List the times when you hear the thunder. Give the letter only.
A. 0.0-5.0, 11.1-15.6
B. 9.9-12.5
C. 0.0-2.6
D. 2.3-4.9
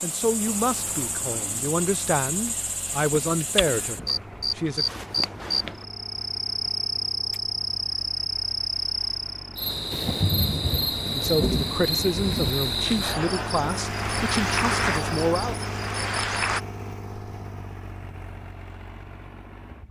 B.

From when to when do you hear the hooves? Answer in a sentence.
The hooves can't be heard in this clip.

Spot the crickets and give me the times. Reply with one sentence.
You can hear the crickets from 0.0 to 16.6 s.